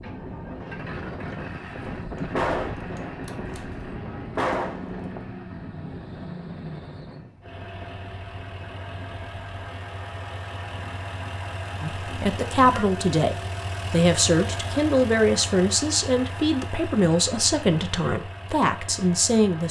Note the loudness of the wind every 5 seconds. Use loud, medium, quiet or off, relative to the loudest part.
loud, medium, medium, off.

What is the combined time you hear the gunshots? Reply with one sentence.
The gunshots can be heard for 3 seconds in total.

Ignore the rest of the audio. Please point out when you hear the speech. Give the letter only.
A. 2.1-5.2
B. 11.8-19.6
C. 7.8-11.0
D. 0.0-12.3
B.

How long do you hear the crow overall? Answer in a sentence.
The crow can't be heard in this clip.